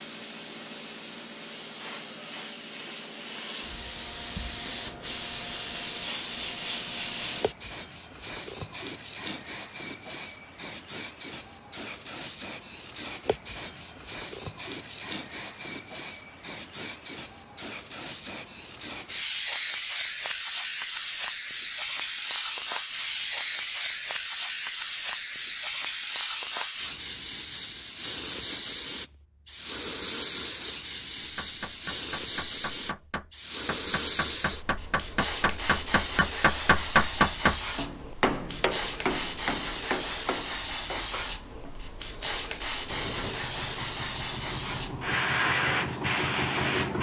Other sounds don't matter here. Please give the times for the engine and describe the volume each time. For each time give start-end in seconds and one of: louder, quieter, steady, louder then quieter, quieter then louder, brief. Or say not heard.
42.9-46.9 louder.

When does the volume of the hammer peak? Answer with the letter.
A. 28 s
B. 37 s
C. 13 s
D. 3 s
B.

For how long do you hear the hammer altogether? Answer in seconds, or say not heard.
11 s.